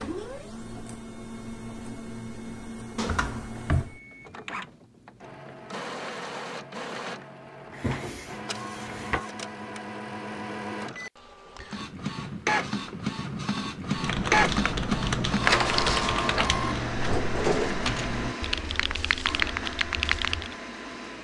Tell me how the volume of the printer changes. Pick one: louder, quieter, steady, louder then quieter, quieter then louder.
louder then quieter.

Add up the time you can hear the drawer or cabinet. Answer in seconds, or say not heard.
3 s.